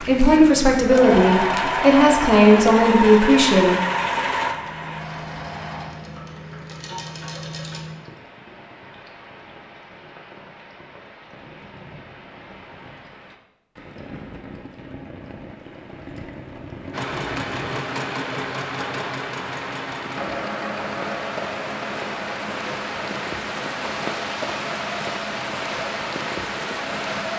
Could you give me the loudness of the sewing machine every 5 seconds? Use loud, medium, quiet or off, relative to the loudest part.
loud, quiet, off, medium, medium, medium.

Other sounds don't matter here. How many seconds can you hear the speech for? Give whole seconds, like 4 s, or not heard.
4 s.